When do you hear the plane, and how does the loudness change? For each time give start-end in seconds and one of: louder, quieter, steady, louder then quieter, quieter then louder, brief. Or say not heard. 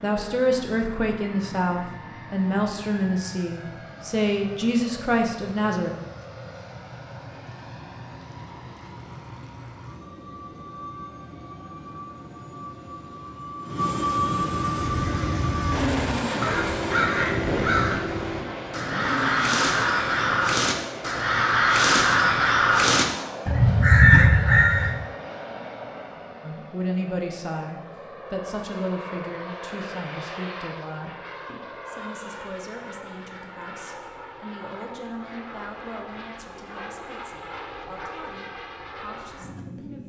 0.0-40.0 louder then quieter.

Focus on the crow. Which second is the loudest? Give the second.
24 s.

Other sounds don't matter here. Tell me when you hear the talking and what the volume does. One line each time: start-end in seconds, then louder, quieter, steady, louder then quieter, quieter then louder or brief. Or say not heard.
0.0-5.9 steady
26.4-40.0 quieter.